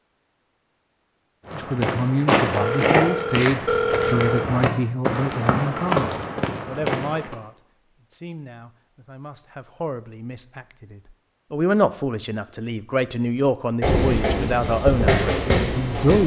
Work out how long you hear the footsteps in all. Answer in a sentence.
The footsteps can be heard for 6 seconds in total.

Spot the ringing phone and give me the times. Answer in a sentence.
The ringing phone can be heard from 2.5 to 4.5 s.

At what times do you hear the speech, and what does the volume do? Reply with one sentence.
You can hear the speech from 1.5 to 16.2 s, getting quieter then louder.